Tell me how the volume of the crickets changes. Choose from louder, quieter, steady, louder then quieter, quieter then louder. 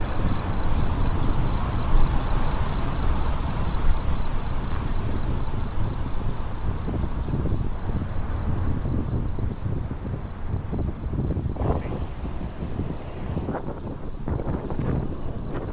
quieter.